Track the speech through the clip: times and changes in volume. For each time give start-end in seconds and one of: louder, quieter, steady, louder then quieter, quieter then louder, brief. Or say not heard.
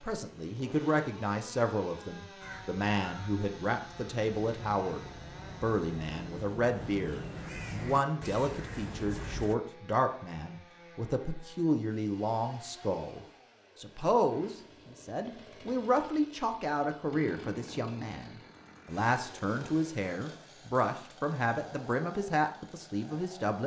0.0-23.6 steady.